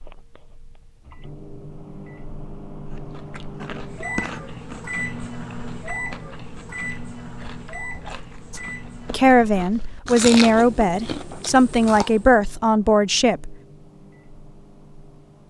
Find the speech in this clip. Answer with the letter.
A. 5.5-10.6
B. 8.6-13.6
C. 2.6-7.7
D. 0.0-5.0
B.